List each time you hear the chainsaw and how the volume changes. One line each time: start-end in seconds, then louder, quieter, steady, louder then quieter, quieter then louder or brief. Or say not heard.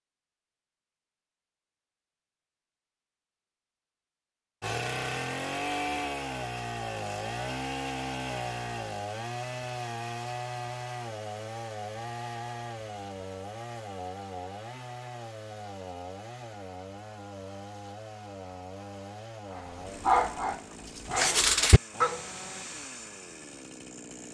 4.6-24.2 quieter.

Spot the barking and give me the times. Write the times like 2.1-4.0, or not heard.
19.5-22.2.